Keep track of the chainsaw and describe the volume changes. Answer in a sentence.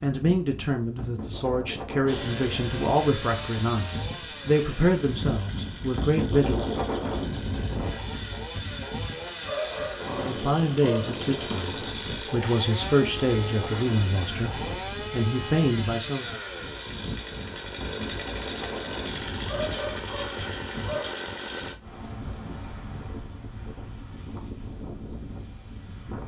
The volume of the chainsaw stays about the same.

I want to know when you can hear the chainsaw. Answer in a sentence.
You can hear the chainsaw from 2.0 to 21.8 s.